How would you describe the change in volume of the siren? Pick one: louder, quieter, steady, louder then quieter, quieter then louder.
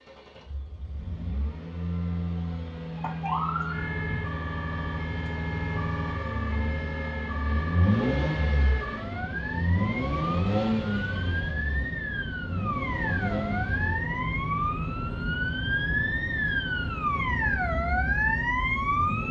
louder.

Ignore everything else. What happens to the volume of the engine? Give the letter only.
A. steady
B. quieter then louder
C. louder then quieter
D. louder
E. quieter
C.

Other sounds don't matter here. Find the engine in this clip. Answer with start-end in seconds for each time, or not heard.
0.1-19.2.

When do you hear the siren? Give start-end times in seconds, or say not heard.
3.0-19.2.